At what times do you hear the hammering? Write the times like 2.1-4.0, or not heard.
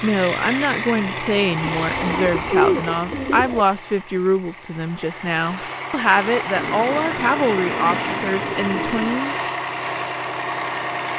not heard.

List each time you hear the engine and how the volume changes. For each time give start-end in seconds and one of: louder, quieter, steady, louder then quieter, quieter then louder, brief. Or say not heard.
0.0-11.1 quieter then louder.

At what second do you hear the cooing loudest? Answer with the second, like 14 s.
3 s.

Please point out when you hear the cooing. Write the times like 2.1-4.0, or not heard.
1.6-3.6, 6.5-9.2.